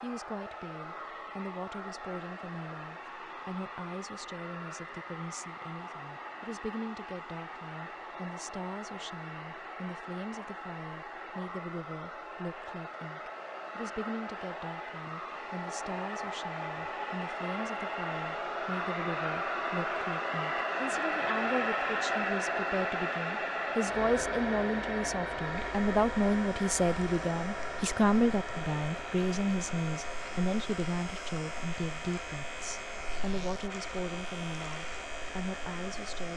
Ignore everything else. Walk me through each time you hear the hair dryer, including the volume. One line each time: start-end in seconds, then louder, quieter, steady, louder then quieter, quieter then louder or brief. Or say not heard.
0.0-36.3 louder then quieter.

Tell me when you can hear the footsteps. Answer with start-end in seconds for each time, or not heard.
not heard.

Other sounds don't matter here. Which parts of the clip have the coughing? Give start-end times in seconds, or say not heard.
not heard.